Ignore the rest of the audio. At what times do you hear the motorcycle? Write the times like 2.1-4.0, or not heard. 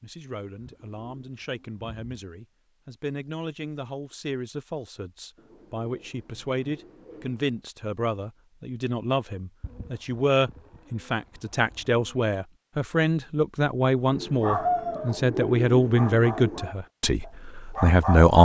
not heard.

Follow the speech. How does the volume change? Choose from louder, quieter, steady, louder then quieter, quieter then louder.
louder.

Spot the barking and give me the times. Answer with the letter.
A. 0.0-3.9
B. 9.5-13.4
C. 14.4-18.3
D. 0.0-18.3
C.